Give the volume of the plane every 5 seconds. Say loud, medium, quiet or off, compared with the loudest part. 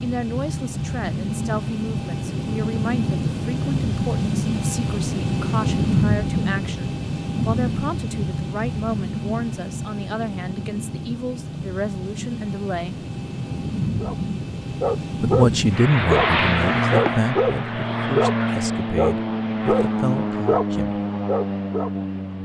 loud, loud, medium, loud, loud.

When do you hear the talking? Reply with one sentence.
You can hear the talking from 0.0 to 13.0 s and from 15.2 to 21.1 s.